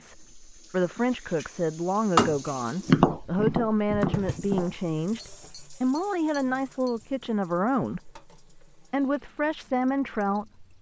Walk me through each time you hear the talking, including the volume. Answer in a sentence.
You can hear the talking from 0.0 to 10.7 s, at a steady volume.